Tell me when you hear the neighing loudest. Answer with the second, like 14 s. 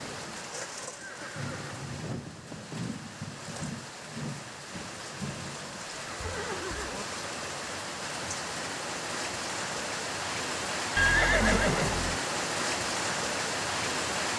11 s.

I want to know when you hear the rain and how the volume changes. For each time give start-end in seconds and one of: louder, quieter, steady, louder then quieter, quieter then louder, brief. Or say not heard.
0.0-14.3 louder.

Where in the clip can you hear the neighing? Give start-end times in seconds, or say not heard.
0.8-2.8, 6.0-7.0, 10.9-12.2.